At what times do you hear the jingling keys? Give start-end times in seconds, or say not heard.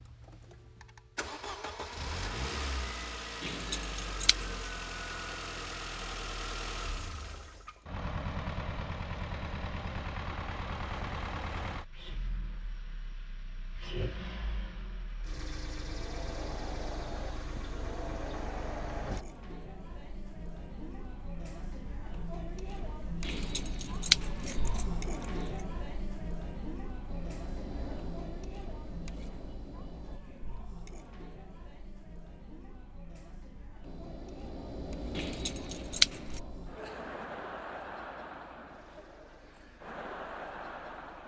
3.4-4.7, 23.2-25.2, 35.1-36.4.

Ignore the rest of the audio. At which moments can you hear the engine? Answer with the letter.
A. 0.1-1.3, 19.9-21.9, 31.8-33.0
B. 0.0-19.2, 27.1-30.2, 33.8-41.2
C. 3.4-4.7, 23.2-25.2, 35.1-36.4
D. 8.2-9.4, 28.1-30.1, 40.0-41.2
B.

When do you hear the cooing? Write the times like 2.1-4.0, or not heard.
not heard.